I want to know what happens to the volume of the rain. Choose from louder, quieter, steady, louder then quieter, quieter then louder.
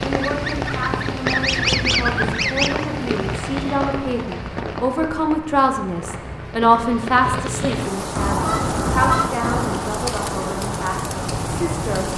quieter then louder.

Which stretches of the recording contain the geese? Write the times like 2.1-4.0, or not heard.
0.2-2.9, 8.2-9.8.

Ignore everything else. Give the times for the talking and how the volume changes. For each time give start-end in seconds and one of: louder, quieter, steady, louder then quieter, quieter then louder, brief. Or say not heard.
0.0-12.1 louder then quieter.